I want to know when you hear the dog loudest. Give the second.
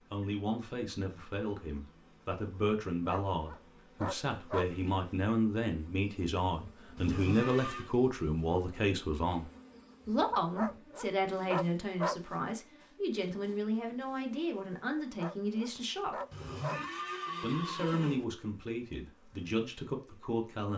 12 s.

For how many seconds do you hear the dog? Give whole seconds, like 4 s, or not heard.
5 s.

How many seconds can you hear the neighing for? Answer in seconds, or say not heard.
3 s.